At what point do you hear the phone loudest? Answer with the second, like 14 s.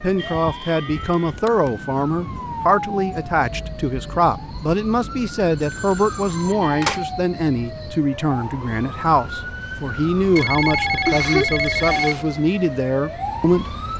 11 s.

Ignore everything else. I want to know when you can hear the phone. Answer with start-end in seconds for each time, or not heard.
1.1-1.7, 5.6-7.0, 10.3-12.2.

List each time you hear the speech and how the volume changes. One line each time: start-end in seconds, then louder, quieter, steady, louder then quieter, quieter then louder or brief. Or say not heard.
0.0-13.8 steady.